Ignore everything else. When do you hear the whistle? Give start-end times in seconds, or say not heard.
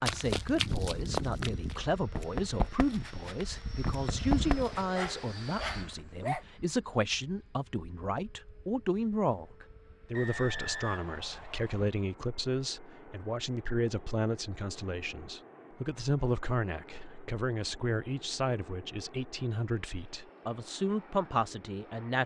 10.1-11.9.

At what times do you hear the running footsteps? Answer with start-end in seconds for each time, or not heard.
0.0-4.8.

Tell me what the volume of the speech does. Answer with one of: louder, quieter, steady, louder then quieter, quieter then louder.
steady.